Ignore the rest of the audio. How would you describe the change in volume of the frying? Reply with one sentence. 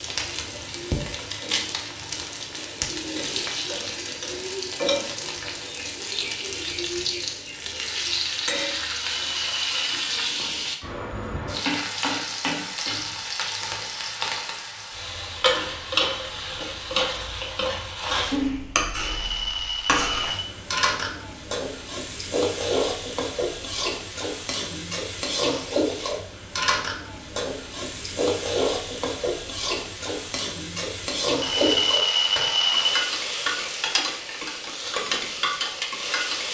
The loudness of the frying stays about the same.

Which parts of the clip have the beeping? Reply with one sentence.
The beeping can be heard from 9.1 to 9.9 s, from 18.9 to 20.5 s and from 31.4 to 33.0 s.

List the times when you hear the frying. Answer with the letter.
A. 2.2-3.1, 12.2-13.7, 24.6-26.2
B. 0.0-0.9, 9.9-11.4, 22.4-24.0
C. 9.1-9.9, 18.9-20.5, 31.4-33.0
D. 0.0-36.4
D.